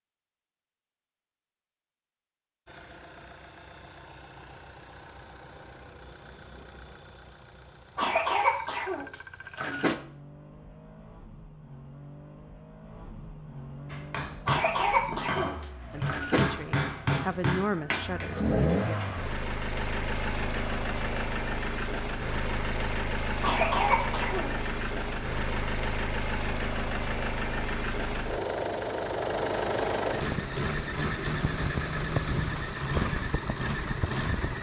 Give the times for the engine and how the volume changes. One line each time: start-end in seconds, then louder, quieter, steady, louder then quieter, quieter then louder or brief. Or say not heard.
2.6-34.5 louder.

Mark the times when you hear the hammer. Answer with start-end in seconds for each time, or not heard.
13.9-19.1.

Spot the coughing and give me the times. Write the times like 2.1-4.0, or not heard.
8.0-9.9, 14.4-16.4, 23.4-24.6.